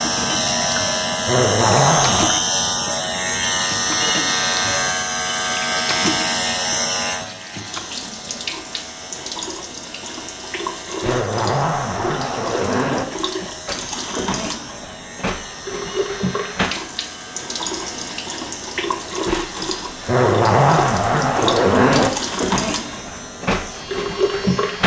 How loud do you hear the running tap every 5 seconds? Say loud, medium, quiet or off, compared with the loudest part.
medium, medium, medium, loud, loud.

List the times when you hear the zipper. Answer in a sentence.
You can hear the zipper from 1.2 to 2.4 s, from 11.0 to 13.1 s and from 20.1 to 22.1 s.